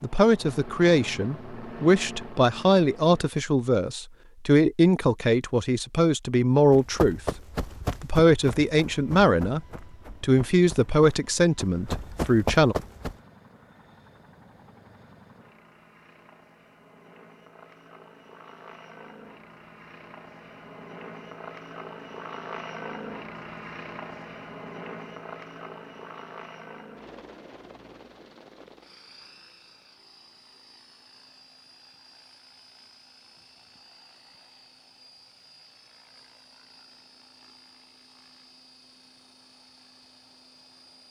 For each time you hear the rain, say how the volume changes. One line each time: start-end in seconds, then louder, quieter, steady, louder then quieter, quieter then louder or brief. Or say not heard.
not heard.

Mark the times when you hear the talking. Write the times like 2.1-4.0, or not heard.
0.0-7.2, 8.0-9.6, 10.2-12.8.